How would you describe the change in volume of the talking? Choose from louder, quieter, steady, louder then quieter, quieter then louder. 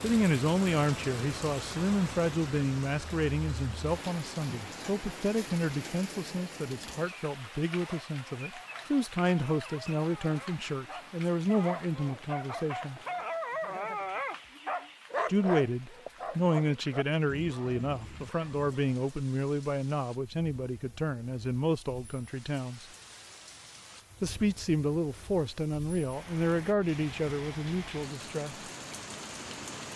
steady.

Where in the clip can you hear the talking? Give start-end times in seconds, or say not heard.
0.0-13.0, 15.2-22.9, 24.2-28.6.